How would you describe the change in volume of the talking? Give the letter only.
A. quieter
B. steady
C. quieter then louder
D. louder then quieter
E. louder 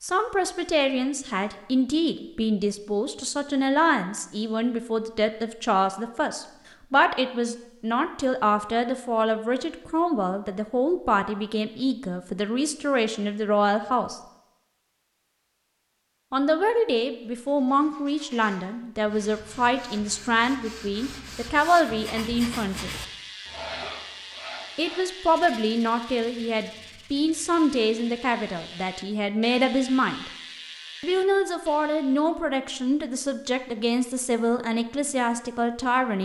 B.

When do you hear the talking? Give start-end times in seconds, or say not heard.
0.0-14.2, 16.3-22.9, 24.8-30.3, 31.0-36.2.